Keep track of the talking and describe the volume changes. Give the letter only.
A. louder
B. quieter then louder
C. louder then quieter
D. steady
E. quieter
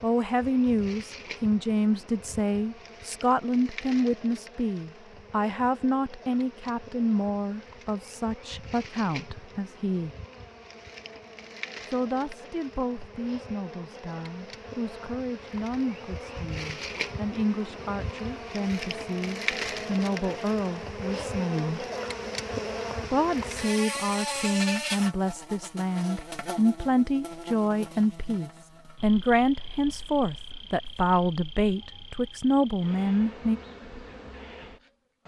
B.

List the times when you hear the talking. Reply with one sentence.
You can hear the talking from 0.0 to 10.2 s, from 11.8 to 21.9 s and from 23.1 to 33.6 s.